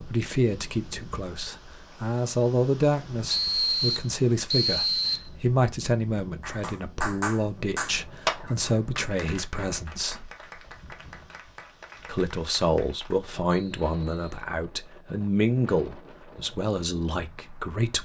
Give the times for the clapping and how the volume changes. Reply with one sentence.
You can hear the clapping from 6.4 to 13.2 s, getting quieter.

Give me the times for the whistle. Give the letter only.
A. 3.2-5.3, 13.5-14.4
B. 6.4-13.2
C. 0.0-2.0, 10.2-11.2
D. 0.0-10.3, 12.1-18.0
A.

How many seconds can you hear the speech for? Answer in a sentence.
The speech can be heard for 16 seconds in total.